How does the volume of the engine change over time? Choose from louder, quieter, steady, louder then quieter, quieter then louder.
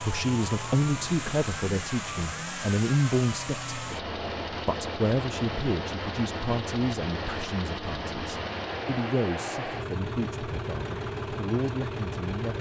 steady.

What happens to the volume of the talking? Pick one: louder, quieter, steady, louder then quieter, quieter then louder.
quieter.